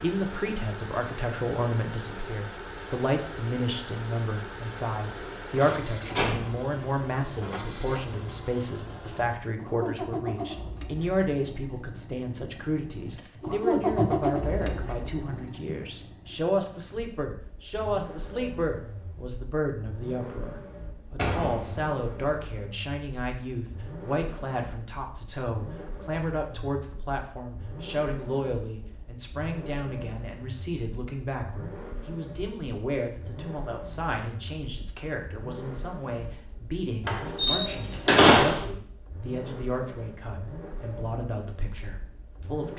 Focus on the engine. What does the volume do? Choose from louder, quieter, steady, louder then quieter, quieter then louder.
louder then quieter.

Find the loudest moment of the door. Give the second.
38 s.